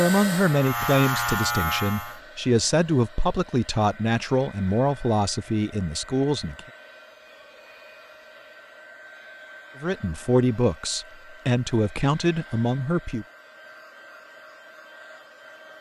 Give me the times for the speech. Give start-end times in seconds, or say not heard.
0.0-6.6, 9.8-13.2.